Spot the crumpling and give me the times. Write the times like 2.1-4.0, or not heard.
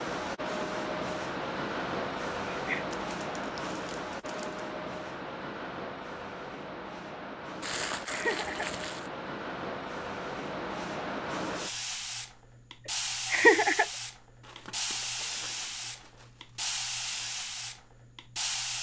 2.9-4.6, 7.6-9.1, 14.4-16.8.